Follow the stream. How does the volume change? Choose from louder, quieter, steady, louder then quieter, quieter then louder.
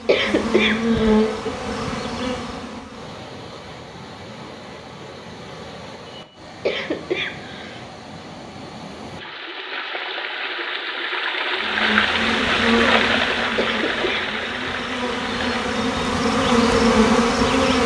louder.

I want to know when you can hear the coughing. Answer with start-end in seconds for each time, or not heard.
0.1-1.5, 6.7-7.8, 13.6-14.2.